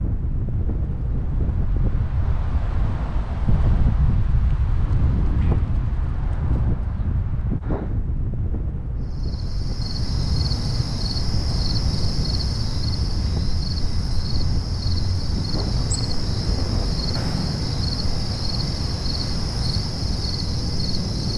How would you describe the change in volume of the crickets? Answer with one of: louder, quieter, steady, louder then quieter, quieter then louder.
steady.